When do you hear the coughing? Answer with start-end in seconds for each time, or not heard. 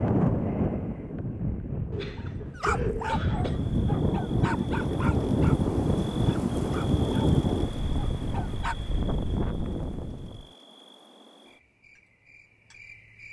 1.9-3.6.